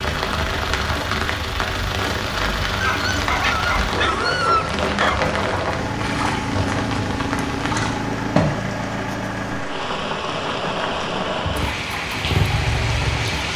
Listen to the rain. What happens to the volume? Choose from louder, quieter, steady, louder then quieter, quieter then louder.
steady.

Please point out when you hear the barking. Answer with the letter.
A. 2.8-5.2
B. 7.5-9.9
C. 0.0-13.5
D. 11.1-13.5
A.